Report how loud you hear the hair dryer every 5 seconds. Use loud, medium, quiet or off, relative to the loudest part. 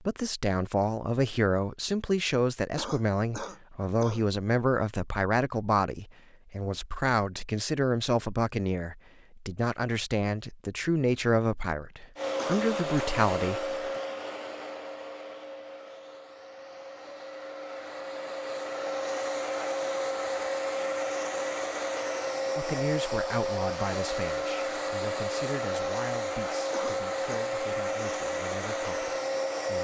off, off, loud, medium, loud, loud.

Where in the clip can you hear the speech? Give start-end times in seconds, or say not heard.
0.0-13.7, 22.6-29.7.